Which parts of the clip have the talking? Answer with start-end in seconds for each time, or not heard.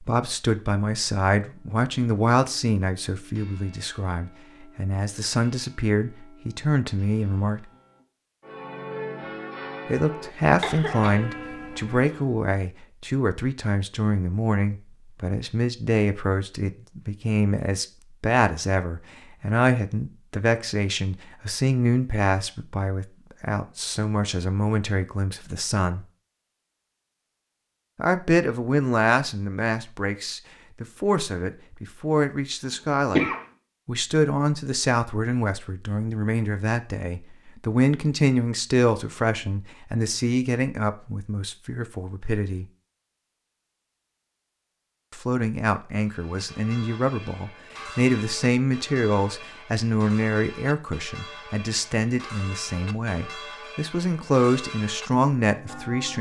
0.0-7.7, 9.8-26.1, 27.9-42.6, 45.1-56.1.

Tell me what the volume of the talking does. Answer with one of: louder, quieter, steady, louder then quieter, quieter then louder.
steady.